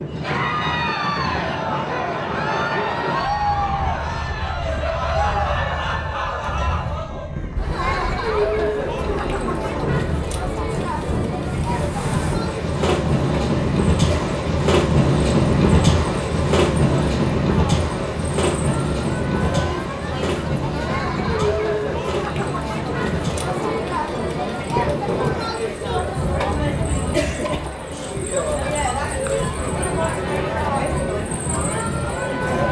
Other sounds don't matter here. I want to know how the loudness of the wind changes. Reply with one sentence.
The loudness of the wind goes up, then down.